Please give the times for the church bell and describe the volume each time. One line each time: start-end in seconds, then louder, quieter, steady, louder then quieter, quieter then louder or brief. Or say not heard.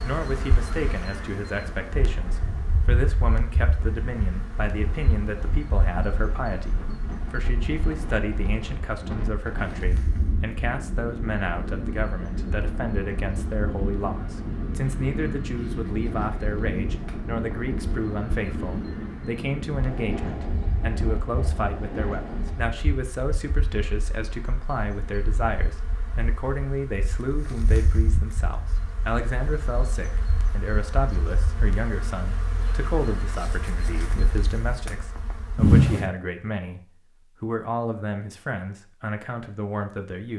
not heard.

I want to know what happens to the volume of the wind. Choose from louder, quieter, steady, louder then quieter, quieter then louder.
louder.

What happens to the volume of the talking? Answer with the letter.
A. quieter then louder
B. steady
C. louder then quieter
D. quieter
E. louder
B.